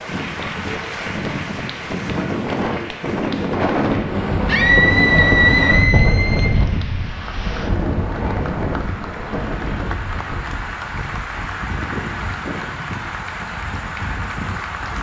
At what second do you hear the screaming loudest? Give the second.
5 s.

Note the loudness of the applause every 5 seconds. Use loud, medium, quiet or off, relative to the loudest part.
loud, medium, loud.